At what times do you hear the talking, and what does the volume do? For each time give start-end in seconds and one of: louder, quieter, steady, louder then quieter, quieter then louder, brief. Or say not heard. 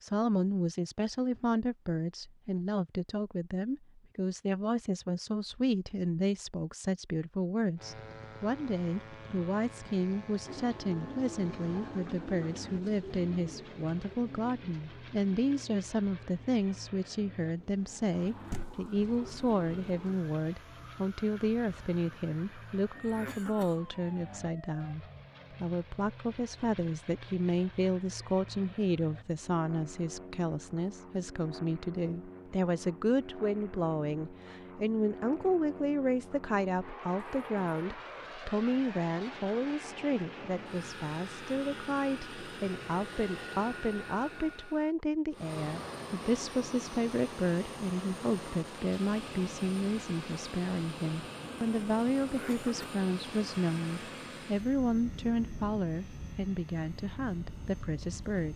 0.0-58.5 steady.